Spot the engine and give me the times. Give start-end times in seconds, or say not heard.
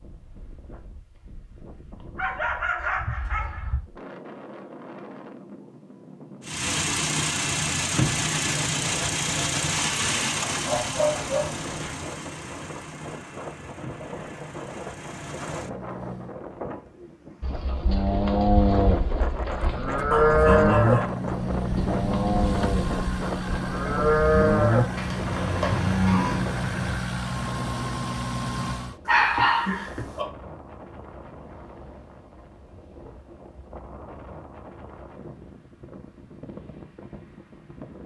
6.4-16.4, 19.4-29.0.